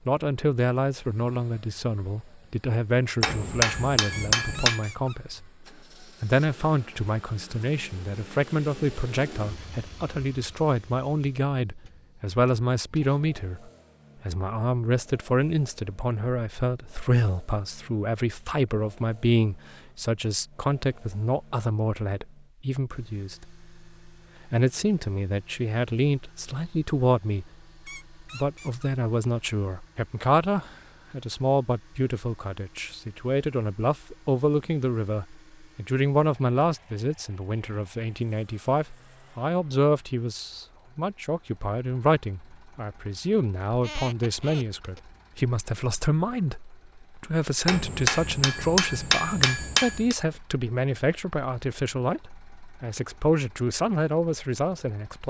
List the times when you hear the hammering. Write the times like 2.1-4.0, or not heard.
3.2-4.8, 47.6-50.1.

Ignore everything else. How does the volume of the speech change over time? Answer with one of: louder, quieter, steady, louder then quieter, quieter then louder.
steady.